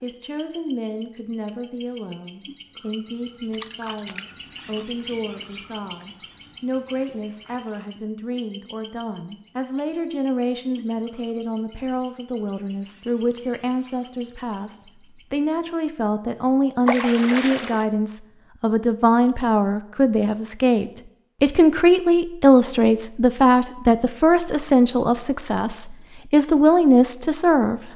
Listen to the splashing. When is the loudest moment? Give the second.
17 s.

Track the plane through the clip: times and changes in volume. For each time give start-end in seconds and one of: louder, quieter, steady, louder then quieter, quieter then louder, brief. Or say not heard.
not heard.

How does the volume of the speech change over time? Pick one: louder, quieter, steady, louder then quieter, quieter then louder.
louder.